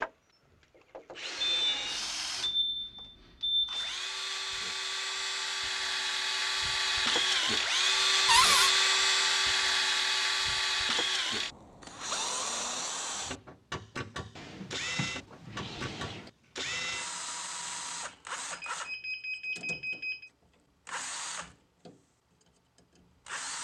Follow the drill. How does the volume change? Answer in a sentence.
The volume of the drill goes up, then down.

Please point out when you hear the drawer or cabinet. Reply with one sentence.
You can hear the drawer or cabinet from 8.2 to 8.7 s and from 14.3 to 16.3 s.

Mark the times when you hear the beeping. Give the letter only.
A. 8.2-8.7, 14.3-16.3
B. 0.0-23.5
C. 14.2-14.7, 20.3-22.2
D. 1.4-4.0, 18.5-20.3
D.